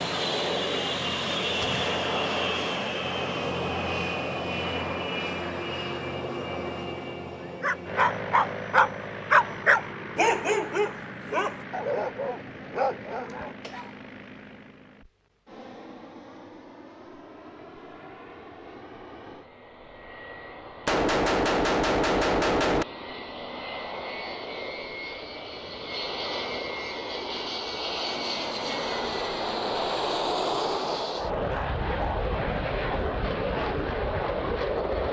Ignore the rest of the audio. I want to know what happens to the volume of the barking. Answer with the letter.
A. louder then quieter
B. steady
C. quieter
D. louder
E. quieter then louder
C.